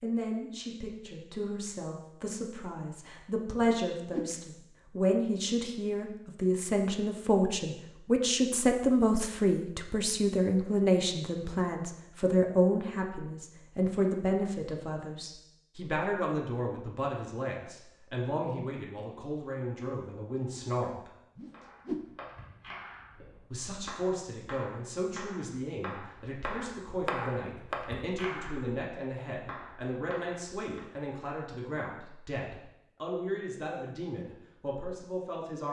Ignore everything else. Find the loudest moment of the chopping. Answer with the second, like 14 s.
27 s.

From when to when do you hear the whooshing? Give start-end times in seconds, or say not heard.
3.6-4.3, 21.4-22.1.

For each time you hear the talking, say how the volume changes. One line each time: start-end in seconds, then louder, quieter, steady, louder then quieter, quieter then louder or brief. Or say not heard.
0.0-21.1 louder then quieter
23.5-35.6 steady.